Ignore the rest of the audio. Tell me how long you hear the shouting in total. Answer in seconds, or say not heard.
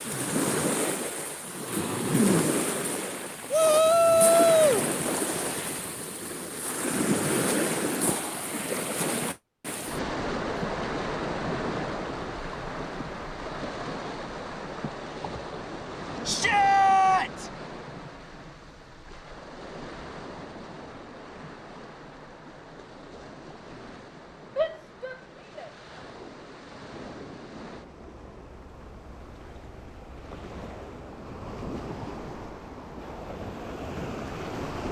4 s.